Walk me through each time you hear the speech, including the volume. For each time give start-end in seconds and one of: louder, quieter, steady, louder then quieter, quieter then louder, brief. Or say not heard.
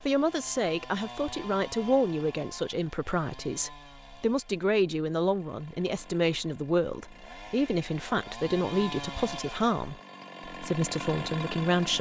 0.0-11.9 steady.